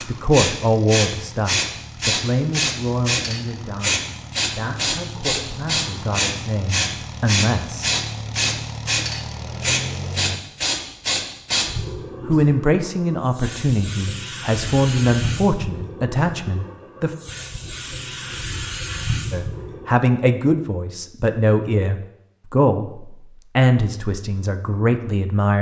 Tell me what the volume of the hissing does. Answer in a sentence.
The loudness of the hissing goes down.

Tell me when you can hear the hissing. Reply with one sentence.
You can hear the hissing from 0.0 to 19.9 s.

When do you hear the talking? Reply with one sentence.
The talking can be heard from 0.1 to 7.9 s, from 12.2 to 17.1 s and from 19.3 to 25.5 s.